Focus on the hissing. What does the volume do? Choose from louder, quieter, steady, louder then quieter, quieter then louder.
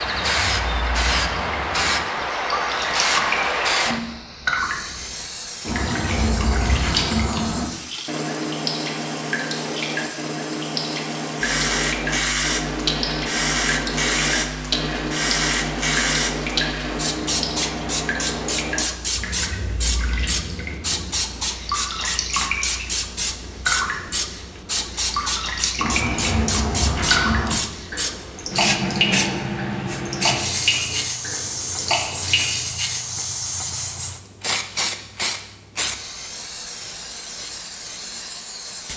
steady.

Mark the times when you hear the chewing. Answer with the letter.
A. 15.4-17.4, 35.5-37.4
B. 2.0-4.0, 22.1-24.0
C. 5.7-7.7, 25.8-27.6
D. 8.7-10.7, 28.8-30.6
C.